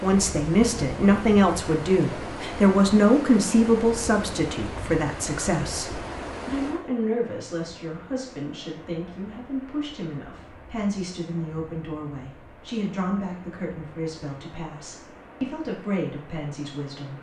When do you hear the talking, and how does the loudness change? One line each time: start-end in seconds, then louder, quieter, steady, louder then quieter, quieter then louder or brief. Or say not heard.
0.0-17.1 quieter.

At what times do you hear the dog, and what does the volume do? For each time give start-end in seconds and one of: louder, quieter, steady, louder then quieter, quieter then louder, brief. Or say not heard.
not heard.